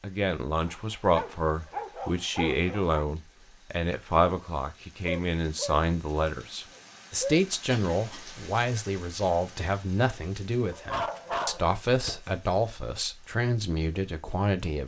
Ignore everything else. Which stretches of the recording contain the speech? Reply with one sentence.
You can hear the speech from 0.0 to 14.8 s.